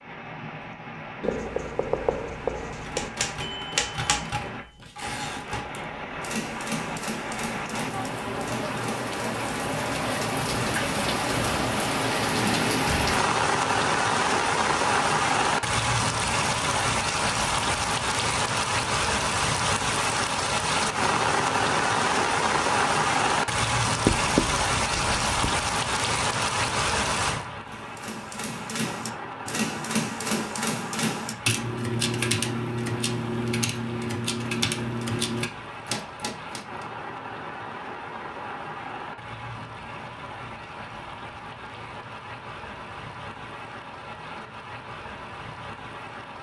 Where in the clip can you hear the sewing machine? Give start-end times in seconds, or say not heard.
not heard.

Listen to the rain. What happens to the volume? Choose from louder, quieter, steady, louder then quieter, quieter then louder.
louder then quieter.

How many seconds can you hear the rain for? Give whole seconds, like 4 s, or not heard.
46 s.